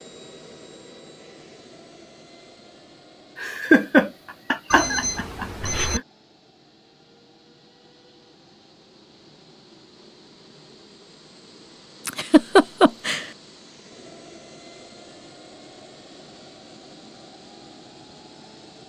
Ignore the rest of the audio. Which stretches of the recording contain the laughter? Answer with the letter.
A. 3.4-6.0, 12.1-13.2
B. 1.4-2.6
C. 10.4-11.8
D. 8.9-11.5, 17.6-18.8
A.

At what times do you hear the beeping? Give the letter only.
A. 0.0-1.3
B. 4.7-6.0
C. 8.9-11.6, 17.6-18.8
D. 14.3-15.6
B.